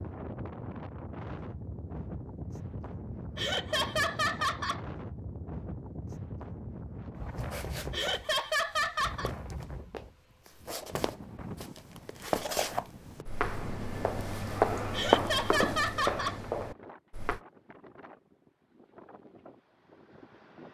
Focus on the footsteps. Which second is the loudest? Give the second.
15 s.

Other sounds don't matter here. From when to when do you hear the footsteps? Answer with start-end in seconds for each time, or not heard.
7.3-17.4.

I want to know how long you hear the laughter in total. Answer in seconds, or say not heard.
4 s.